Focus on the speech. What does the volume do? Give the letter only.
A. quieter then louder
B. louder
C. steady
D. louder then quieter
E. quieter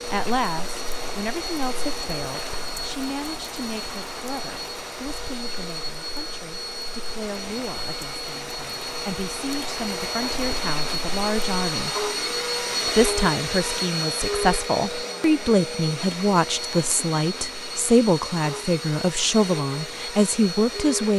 A.